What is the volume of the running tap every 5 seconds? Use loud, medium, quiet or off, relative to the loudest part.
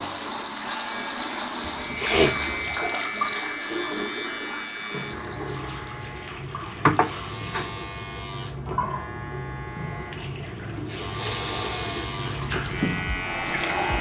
loud, medium, medium.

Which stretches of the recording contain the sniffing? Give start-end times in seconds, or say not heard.
1.6-2.8, 6.8-7.7, 11.2-12.2.